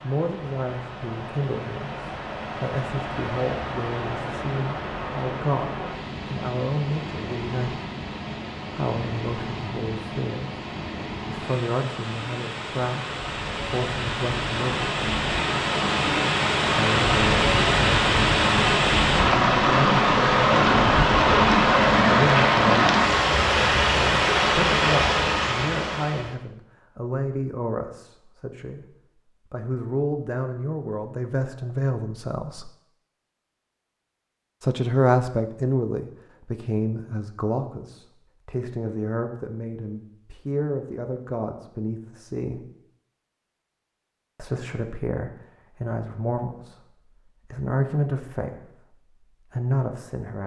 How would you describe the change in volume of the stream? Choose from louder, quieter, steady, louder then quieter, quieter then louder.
louder.